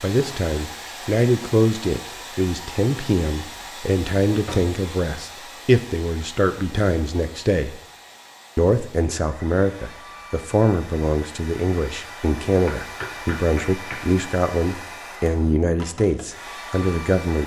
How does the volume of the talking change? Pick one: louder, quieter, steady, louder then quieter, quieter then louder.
steady.